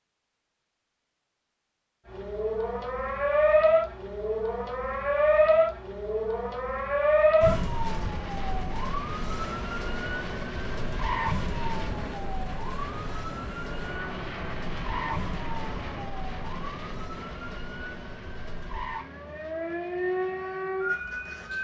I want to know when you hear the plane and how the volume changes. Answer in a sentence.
The plane can be heard from 7.4 to 21.5 s, getting quieter.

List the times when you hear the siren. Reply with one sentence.
You can hear the siren from 2.0 to 21.5 s.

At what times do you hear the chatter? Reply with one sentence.
The chatter can't be heard in this clip.